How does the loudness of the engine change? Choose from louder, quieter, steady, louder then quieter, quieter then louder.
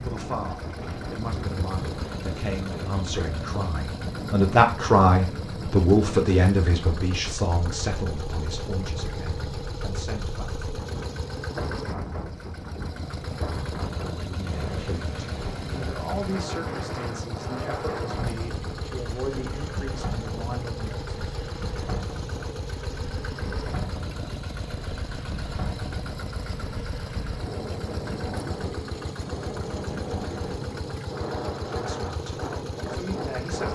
steady.